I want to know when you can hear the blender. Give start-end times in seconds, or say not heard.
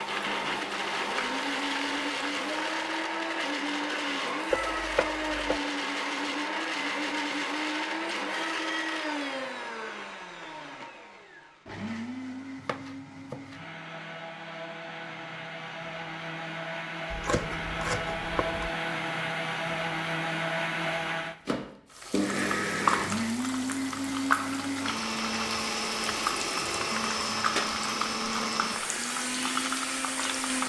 0.0-30.6.